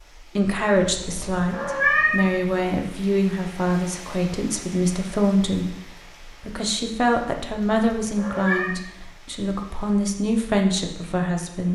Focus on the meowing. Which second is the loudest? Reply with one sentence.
The volume of the meowing peaks at 2 seconds.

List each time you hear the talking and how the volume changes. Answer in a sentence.
The talking can be heard from 0.3 to 11.6 s, at a steady volume.